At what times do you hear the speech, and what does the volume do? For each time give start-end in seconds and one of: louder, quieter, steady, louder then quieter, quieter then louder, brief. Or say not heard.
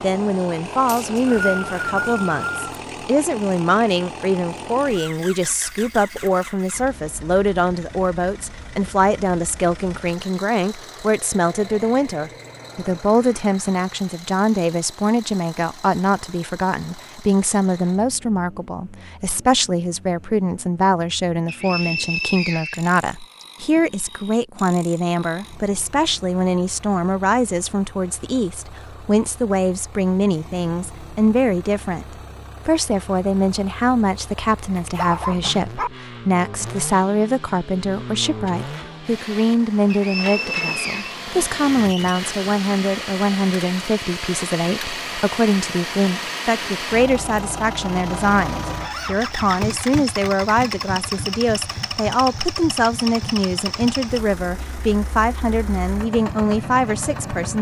0.0-57.5 steady.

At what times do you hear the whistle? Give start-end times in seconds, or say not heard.
0.8-2.6, 21.4-23.4, 39.9-41.1.